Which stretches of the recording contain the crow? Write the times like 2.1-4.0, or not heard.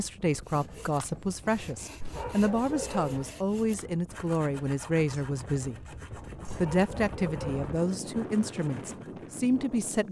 not heard.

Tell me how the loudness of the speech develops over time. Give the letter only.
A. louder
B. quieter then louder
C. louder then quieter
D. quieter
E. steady
E.